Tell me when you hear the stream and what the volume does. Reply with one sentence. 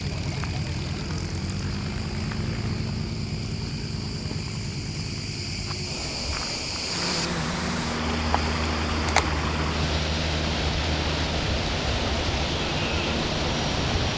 You can hear the stream from 6.8 to 14.1 s, at a steady volume.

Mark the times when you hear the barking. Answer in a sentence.
You can't hear the barking here.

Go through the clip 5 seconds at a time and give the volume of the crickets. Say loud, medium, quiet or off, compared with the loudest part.
medium, loud, loud.